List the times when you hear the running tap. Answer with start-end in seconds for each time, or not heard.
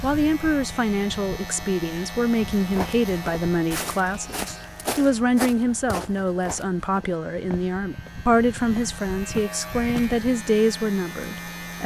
not heard.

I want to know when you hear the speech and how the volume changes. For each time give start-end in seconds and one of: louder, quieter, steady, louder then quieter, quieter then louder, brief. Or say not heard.
0.0-11.8 steady.